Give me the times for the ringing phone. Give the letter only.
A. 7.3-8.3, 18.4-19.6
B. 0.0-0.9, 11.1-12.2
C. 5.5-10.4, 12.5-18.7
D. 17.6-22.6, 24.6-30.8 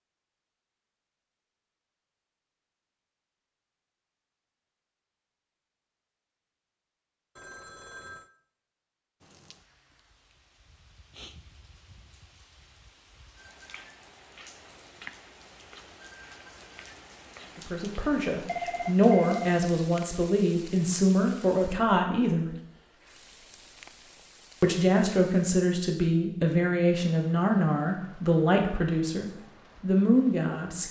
A.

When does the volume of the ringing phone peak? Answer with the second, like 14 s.
19 s.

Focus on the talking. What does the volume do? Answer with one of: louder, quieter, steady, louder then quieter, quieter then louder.
steady.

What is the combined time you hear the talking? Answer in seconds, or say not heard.
11 s.